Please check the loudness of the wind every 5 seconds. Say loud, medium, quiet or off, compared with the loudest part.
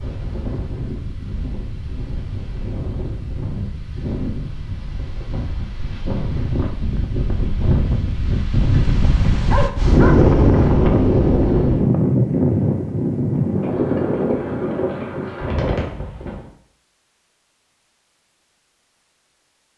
quiet, medium, loud, medium.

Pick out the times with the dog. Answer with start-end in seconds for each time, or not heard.
9.5-10.2.